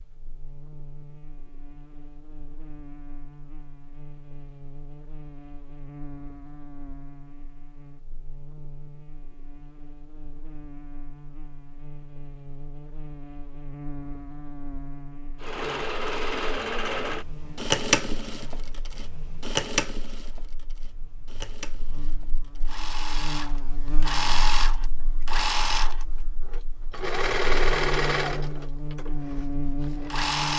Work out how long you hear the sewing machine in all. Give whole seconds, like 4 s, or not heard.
15 s.